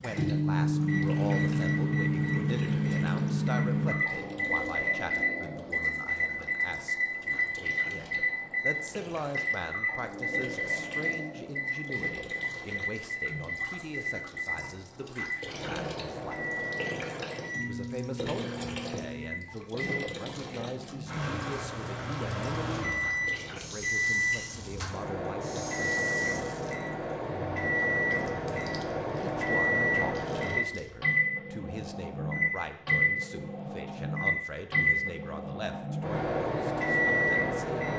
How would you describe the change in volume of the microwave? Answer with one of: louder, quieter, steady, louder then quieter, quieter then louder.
quieter then louder.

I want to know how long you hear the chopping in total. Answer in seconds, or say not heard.
not heard.